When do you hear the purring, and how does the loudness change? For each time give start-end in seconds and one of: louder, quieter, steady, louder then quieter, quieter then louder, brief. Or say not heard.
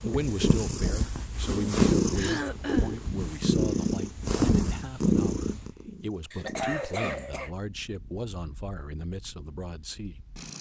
0.0-10.5 quieter.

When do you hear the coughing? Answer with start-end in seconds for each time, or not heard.
2.1-3.0, 6.3-7.5.